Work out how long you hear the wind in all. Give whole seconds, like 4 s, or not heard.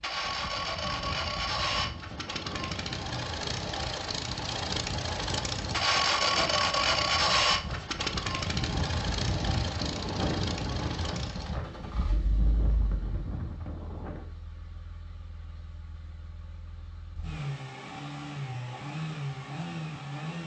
14 s.